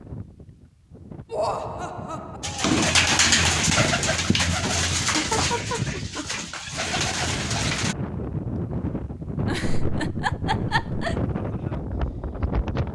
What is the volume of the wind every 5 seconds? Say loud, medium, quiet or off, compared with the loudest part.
medium, loud, loud.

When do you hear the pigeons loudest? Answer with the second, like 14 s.
3 s.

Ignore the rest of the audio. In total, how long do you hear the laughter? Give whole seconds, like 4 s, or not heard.
4 s.